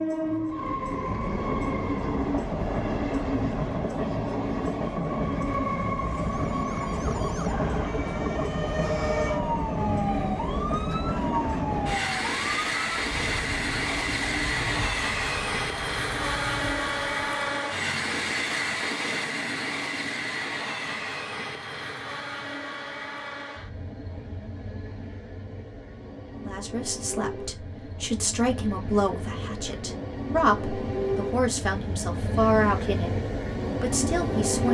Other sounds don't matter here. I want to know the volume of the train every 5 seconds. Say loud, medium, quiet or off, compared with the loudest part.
loud, loud, loud, loud, medium, medium, loud.